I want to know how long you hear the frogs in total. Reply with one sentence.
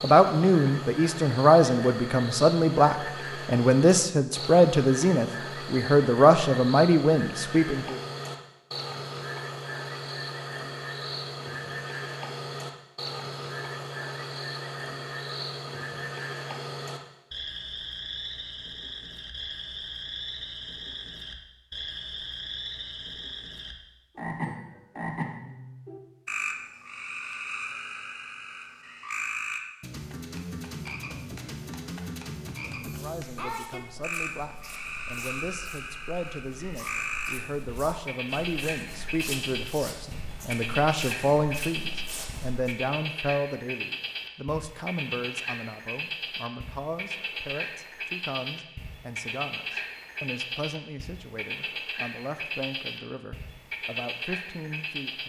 The frogs can be heard for 55 seconds in total.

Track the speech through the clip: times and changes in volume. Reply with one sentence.
You can hear the speech from 0.0 to 8.0 s, at a steady volume; and from 32.8 to 55.2 s, getting louder then quieter.